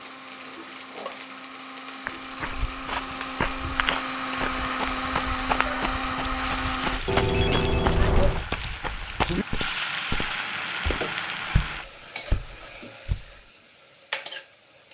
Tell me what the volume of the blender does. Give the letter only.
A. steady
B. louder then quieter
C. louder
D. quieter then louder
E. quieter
C.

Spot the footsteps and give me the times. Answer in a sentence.
You can hear the footsteps from 2.0 to 13.3 s.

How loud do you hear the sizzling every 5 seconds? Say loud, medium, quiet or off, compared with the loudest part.
medium, loud, loud.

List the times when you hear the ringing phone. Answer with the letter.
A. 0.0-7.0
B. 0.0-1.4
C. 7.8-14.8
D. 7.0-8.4
D.